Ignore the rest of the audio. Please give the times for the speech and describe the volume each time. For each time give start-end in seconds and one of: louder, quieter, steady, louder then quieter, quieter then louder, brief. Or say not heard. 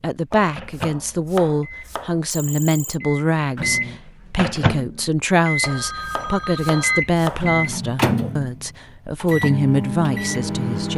0.0-10.9 steady.